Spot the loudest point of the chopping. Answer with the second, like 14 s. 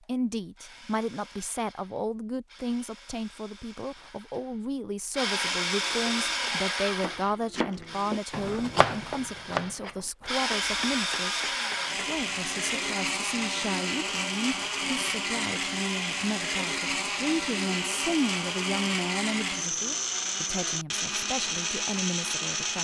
9 s.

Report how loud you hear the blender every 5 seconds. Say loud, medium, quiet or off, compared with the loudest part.
quiet, loud, loud, loud, loud.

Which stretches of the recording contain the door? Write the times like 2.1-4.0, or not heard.
not heard.